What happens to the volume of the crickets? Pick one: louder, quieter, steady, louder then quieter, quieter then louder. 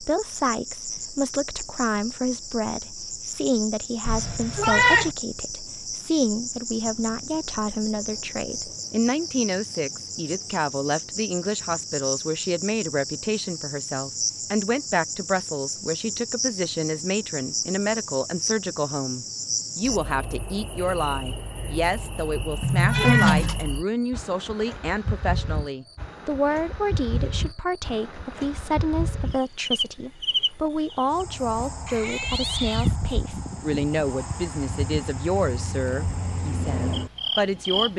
steady.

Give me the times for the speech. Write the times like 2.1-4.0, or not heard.
0.0-37.9.